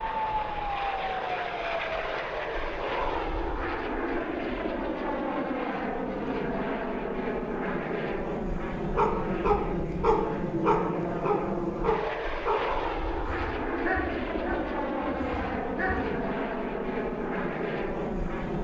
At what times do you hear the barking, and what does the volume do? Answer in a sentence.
You can hear the barking from 8.9 to 16.1 s, getting quieter.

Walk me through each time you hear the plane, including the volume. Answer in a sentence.
You can hear the plane from 0.0 to 18.5 s, at a steady volume.